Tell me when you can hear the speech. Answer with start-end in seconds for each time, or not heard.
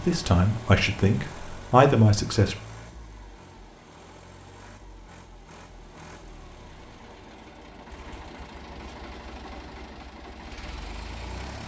0.0-2.5.